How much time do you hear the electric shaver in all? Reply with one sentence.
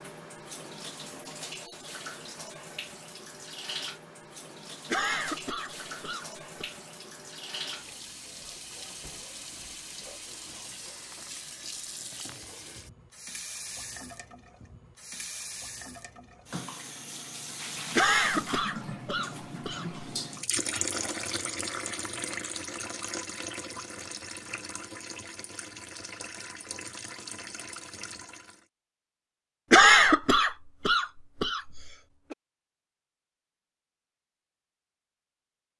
You can't hear the electric shaver here.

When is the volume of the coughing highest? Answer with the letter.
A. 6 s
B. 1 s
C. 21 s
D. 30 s
D.